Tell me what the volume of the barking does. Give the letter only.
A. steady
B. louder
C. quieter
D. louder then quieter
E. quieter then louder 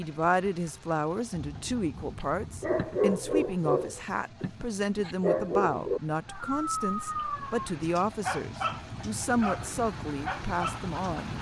C.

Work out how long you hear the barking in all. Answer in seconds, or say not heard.
9 s.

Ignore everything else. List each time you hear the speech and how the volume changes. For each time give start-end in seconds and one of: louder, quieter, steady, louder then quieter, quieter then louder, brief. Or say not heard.
0.0-11.3 steady.